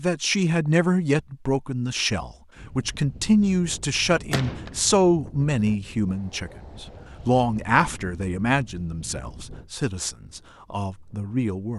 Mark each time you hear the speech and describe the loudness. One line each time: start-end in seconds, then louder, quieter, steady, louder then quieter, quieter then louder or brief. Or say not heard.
0.0-11.7 quieter.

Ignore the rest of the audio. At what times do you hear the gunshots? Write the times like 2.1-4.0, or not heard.
4.3-4.8.